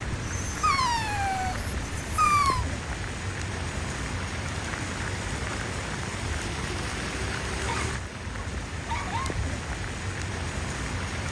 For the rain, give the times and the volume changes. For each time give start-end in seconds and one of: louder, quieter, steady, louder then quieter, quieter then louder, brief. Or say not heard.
0.0-11.2 steady.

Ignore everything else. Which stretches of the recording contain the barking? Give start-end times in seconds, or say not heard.
0.3-2.6, 7.7-9.4.